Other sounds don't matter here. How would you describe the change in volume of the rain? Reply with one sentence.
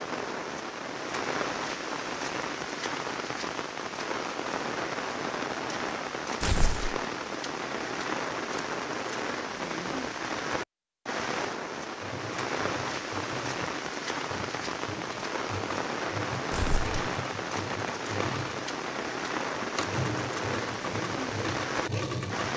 The loudness of the rain stays about the same.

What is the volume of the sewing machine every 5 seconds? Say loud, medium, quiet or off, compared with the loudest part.
off, off, medium, loud, loud.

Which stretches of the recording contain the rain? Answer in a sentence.
The rain can be heard from 0.0 to 22.5 s.